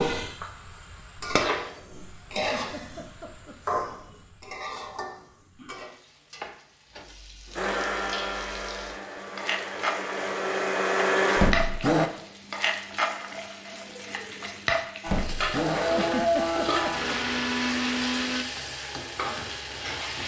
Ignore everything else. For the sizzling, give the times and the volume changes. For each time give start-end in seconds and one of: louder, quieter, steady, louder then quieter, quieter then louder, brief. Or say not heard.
0.0-20.2 quieter then louder.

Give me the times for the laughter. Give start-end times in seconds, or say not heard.
2.4-3.5, 15.9-17.1.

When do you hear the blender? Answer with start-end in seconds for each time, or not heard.
7.5-12.1, 15.0-18.4.